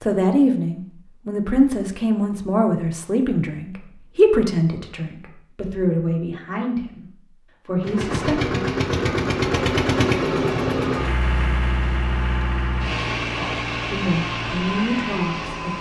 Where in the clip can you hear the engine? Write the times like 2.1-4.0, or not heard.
7.8-15.7.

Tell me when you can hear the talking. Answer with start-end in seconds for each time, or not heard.
0.0-8.6, 13.3-15.7.